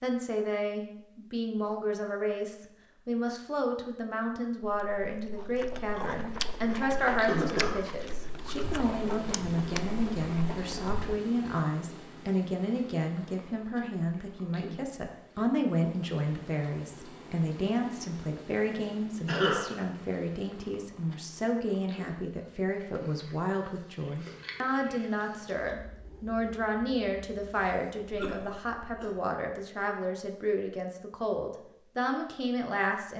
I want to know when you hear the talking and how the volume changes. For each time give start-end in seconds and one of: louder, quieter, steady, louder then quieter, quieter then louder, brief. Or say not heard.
0.0-33.1 steady.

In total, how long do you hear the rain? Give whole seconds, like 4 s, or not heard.
not heard.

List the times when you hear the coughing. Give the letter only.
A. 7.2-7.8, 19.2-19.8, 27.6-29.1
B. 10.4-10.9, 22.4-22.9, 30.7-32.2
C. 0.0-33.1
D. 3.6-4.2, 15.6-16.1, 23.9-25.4
A.